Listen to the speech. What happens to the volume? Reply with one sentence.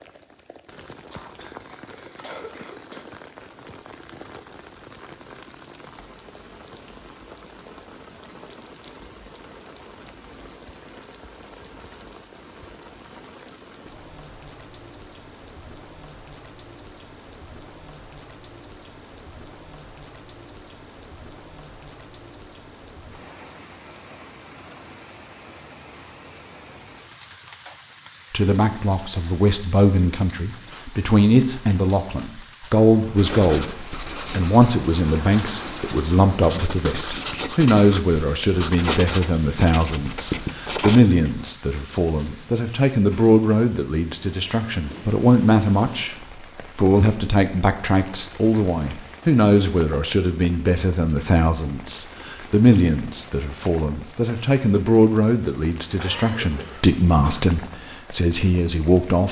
The volume of the speech stays about the same.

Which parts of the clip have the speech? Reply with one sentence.
You can hear the speech from 28.3 to 46.1 s and from 46.8 to 59.2 s.